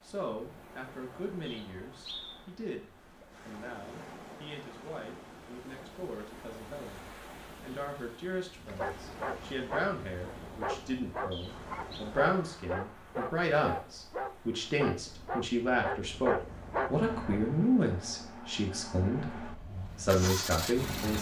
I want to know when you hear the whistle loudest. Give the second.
2 s.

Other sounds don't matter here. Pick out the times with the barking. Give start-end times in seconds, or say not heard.
8.6-17.5.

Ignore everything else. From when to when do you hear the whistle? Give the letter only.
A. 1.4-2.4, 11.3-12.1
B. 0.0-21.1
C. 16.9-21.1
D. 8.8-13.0
A.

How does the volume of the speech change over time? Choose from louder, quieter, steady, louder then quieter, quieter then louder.
louder.